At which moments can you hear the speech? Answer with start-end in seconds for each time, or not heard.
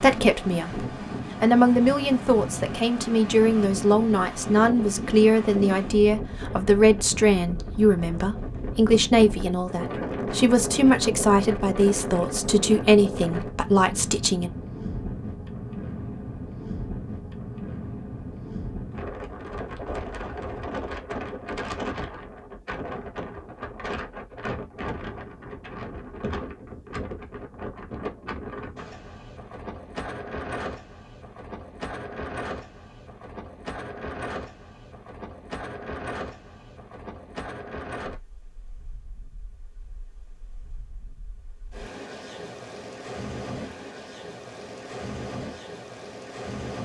0.0-14.5.